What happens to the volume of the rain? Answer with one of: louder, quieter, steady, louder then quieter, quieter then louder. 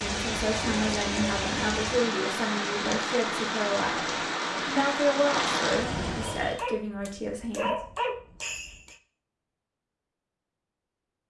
steady.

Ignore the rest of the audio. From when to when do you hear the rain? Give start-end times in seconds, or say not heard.
0.0-6.7.